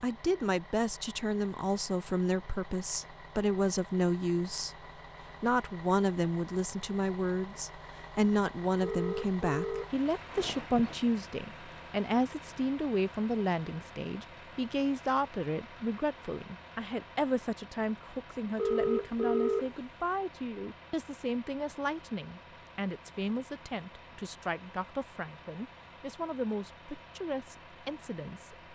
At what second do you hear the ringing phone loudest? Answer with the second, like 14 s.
19 s.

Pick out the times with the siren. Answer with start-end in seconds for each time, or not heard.
not heard.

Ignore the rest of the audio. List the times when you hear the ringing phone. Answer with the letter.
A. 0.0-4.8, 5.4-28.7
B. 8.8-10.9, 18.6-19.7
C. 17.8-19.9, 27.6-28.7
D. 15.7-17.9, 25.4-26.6
B.